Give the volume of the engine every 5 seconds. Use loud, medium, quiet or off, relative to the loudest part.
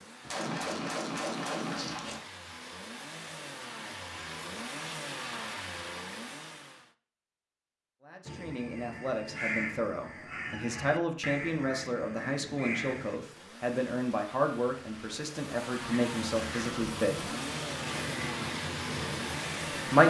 medium, loud, quiet, loud.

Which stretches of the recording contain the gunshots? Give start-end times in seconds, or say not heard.
0.2-2.2.